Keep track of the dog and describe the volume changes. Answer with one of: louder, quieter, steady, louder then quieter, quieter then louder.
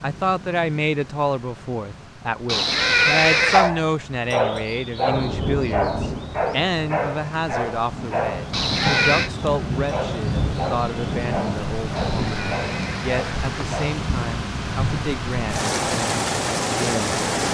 quieter.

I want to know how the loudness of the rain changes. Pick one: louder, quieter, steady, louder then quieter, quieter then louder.
louder.